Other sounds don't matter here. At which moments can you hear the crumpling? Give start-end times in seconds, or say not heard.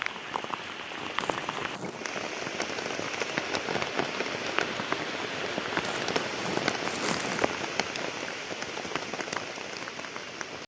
1.2-2.1, 5.8-7.5.